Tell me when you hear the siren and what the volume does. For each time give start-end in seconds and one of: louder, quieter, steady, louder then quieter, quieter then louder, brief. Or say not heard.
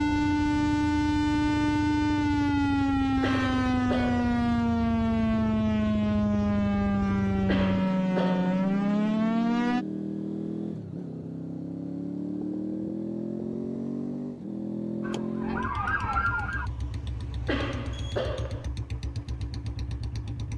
0.0-9.8 steady
15.0-16.7 brief.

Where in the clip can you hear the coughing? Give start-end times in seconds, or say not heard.
3.2-4.3, 7.5-8.6, 17.4-18.7.